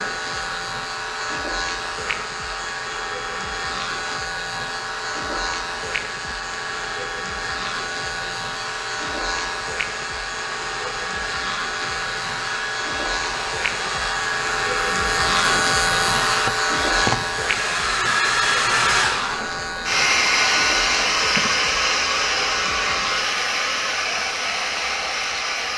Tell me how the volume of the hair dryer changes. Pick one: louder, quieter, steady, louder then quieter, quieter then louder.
louder.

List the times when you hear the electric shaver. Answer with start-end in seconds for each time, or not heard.
0.0-25.6.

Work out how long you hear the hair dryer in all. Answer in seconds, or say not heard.
26 s.